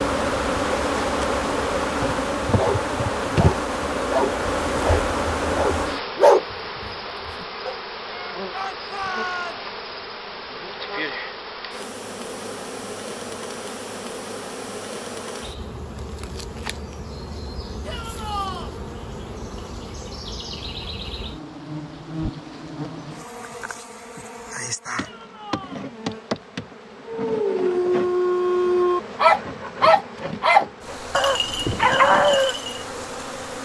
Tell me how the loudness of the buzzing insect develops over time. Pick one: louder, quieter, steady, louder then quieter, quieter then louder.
quieter.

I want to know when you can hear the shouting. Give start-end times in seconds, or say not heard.
8.5-9.6, 17.9-18.8, 24.9-25.9.